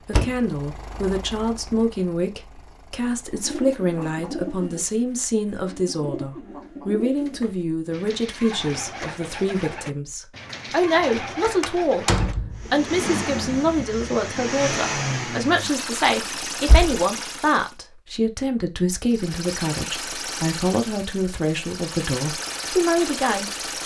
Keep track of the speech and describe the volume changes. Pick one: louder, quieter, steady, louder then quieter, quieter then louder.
steady.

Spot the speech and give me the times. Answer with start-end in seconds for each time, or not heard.
0.1-23.8.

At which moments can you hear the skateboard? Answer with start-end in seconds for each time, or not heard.
not heard.